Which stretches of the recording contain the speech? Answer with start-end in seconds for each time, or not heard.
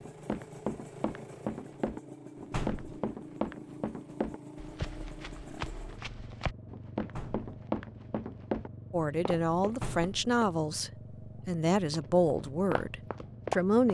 8.9-13.8.